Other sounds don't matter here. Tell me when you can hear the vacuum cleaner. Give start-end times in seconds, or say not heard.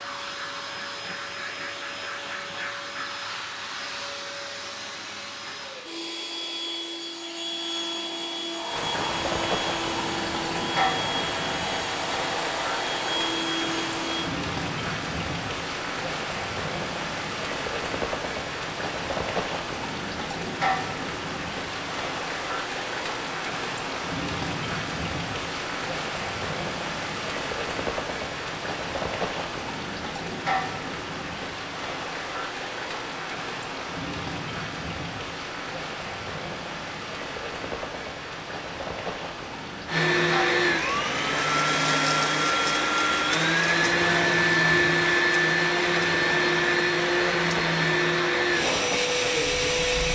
0.0-14.3, 39.9-50.0.